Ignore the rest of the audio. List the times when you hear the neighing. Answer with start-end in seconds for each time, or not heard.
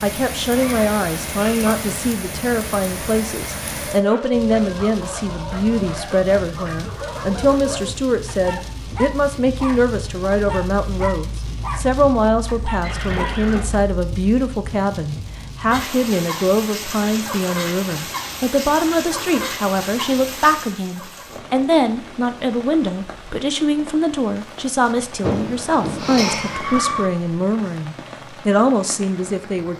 0.5-1.7, 12.8-13.8, 25.2-27.1.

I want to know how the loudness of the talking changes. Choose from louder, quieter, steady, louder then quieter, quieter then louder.
steady.